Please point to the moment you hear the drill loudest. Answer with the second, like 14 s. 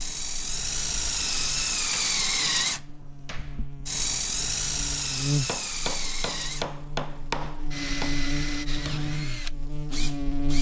2 s.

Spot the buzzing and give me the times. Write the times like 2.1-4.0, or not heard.
0.0-10.5.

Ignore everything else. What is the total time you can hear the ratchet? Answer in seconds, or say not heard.
not heard.